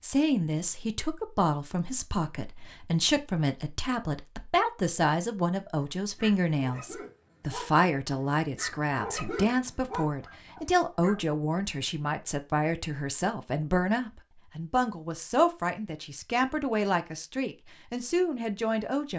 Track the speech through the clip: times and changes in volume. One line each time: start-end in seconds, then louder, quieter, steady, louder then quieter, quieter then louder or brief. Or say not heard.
0.0-19.1 steady.